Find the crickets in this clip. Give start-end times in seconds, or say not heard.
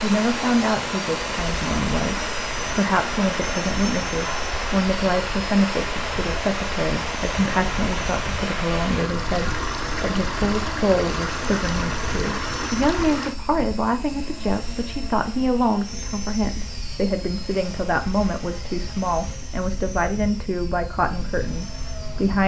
not heard.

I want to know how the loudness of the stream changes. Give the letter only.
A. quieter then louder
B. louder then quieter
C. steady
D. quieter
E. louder
C.